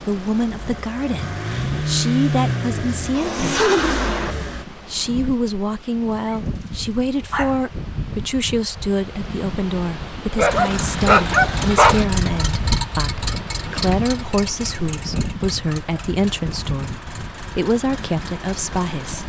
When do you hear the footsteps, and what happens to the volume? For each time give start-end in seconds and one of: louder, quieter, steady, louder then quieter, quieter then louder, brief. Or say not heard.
not heard.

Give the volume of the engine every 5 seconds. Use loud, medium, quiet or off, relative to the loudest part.
loud, off, medium, quiet.